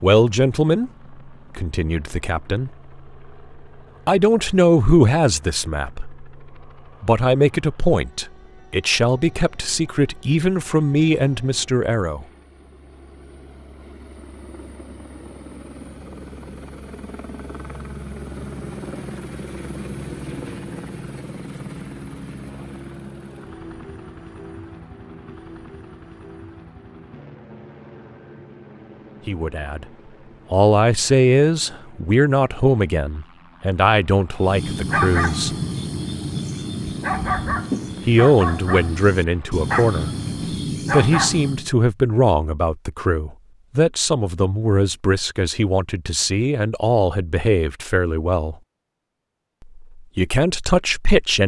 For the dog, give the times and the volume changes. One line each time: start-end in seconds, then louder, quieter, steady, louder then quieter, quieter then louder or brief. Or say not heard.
34.4-41.7 steady.